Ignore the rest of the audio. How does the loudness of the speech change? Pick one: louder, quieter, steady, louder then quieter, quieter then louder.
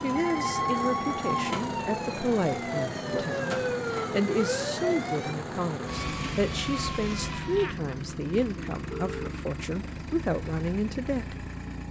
steady.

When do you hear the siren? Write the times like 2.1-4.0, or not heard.
0.0-7.7.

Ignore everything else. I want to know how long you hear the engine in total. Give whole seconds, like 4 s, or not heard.
12 s.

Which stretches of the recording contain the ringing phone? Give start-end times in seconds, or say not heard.
0.1-1.4, 7.6-8.2, 8.9-9.3.